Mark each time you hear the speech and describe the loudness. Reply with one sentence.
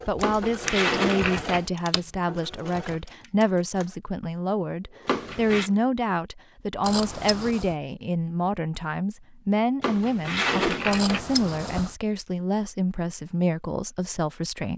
You can hear the speech from 0.1 to 14.7 s, at a steady volume.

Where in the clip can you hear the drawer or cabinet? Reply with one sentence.
You can hear the drawer or cabinet from 0.2 to 1.6 s, from 5.0 to 5.7 s and from 9.8 to 11.3 s.